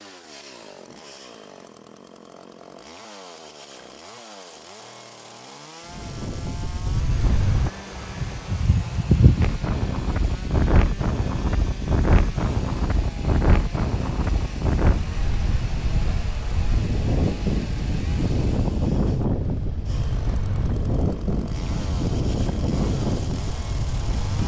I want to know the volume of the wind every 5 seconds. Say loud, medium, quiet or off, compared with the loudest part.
off, loud, loud, loud, loud.